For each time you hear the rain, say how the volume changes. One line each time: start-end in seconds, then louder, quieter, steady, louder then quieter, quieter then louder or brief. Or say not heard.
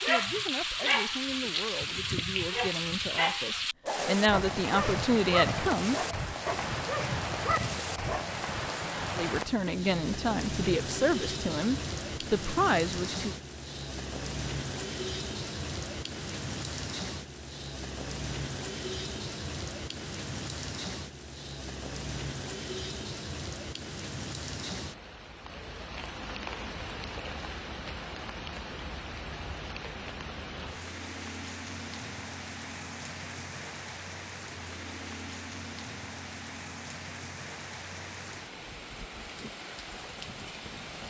0.0-41.0 quieter.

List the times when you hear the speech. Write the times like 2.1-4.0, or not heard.
0.0-6.0, 9.2-13.3.